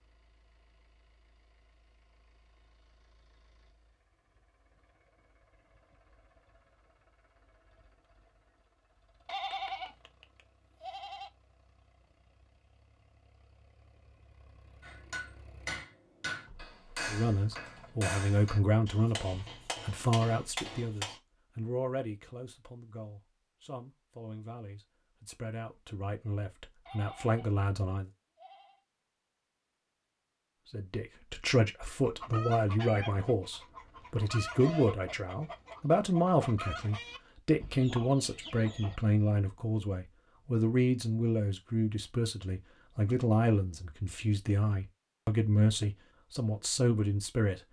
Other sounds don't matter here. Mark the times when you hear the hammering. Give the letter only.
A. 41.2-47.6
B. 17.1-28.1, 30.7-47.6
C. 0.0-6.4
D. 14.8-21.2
D.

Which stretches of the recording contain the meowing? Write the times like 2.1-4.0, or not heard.
not heard.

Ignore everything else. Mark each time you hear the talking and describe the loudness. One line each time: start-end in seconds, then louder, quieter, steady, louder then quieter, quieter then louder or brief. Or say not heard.
17.1-28.1 quieter then louder
30.7-47.6 steady.